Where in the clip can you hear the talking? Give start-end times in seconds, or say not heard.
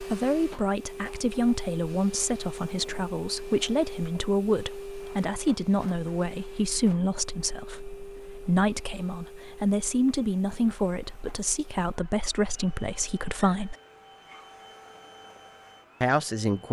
0.0-13.8, 16.0-16.6.